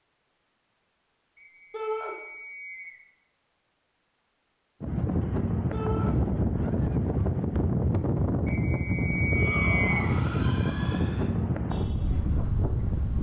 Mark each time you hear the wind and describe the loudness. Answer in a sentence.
You can hear the wind from 4.8 to 13.1 s, at a steady volume.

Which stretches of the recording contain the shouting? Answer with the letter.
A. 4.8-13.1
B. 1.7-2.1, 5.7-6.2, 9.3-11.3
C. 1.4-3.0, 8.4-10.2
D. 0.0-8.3
B.